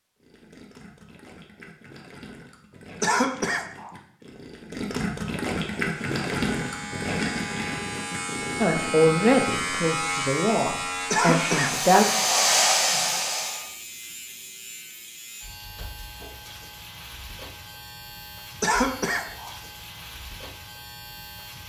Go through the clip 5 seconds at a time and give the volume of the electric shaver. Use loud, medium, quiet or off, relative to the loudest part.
off, loud, loud, medium, medium.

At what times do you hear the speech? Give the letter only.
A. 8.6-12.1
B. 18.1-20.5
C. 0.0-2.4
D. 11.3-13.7
A.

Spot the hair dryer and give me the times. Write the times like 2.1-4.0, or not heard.
11.3-13.7.